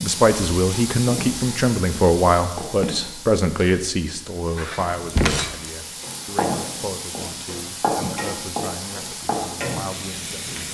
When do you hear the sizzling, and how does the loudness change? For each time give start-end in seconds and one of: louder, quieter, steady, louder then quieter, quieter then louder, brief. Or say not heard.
0.0-10.6 quieter then louder.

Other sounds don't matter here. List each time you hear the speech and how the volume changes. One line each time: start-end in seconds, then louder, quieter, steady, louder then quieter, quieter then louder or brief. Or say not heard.
0.0-10.6 quieter.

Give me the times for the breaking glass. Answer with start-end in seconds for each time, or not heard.
4.5-5.5.